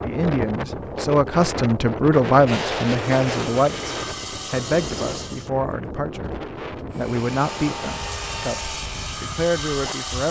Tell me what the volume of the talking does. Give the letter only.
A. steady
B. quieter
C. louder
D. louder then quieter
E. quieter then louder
B.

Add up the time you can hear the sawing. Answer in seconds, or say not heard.
6 s.